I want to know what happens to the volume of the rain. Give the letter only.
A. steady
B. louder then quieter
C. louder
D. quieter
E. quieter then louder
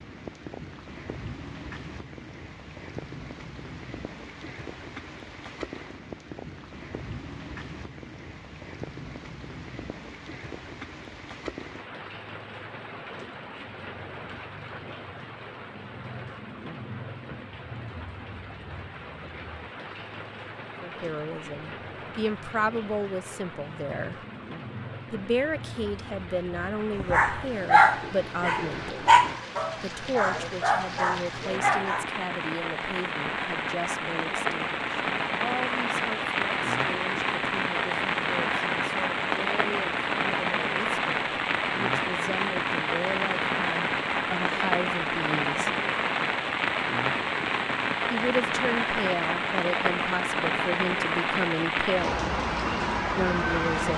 C.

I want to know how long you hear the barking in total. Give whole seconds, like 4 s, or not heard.
5 s.